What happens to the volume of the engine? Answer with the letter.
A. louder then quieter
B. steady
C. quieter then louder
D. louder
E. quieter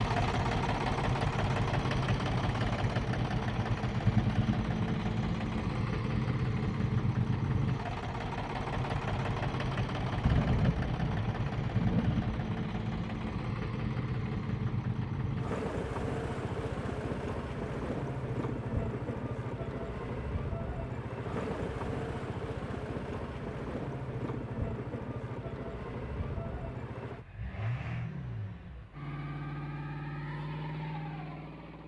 E.